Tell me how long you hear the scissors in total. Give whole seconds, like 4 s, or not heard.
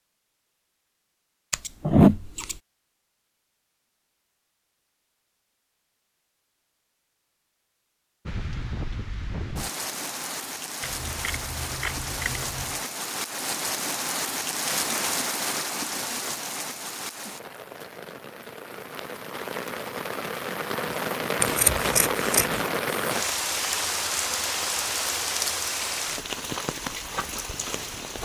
4 s.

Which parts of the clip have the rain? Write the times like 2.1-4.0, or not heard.
8.2-28.1.